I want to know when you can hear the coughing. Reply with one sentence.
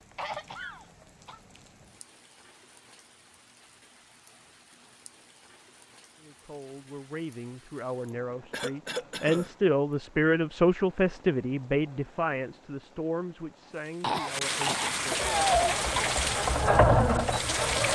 You can hear the coughing from 0.1 to 1.4 s, from 8.1 to 9.5 s and from 14.0 to 16.1 s.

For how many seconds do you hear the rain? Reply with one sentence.
You can hear the rain for 18 seconds altogether.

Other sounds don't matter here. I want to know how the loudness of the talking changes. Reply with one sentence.
The volume of the talking goes up, then down.